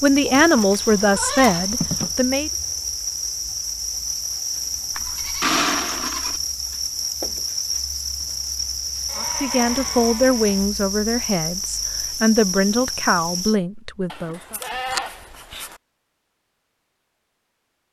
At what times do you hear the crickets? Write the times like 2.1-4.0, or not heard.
0.0-13.6.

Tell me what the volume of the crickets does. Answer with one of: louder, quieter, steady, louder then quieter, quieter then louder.
steady.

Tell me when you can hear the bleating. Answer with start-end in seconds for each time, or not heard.
0.3-2.1, 4.9-6.4, 9.1-10.7, 14.1-15.8.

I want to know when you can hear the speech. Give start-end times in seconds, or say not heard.
0.0-2.5, 9.2-14.6.